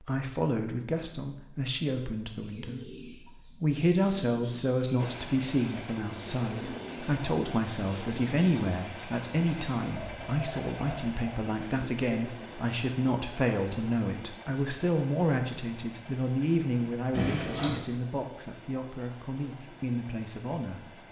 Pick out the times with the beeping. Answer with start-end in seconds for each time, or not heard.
5.0-6.4, 17.1-17.8.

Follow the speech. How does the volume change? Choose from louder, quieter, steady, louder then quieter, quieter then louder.
steady.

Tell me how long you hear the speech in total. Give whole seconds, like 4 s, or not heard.
21 s.